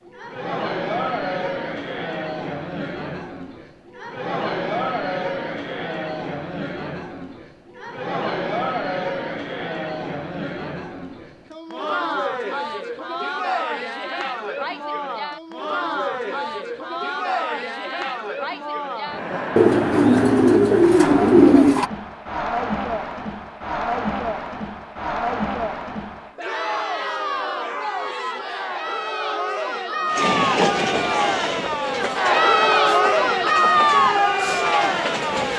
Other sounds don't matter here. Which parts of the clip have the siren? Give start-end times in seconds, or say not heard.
not heard.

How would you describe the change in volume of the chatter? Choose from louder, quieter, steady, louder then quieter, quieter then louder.
louder.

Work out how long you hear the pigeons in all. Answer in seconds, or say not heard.
2 s.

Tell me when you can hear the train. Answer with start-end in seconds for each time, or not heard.
30.1-35.5.